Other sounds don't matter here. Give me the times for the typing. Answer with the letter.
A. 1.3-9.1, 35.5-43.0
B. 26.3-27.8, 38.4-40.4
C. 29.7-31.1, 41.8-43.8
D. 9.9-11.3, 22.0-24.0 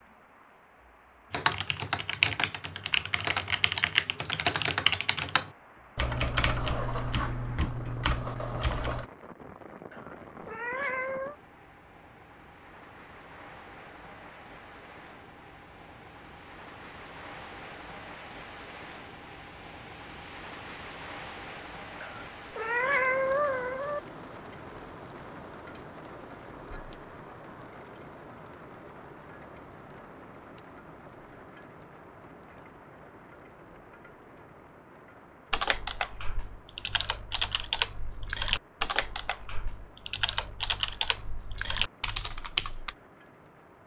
A.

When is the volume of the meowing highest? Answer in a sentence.
The loudest moment of the meowing is at 23 seconds.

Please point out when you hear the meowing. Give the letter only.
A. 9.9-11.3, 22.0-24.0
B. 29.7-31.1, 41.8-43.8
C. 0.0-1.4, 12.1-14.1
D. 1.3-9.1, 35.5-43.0
A.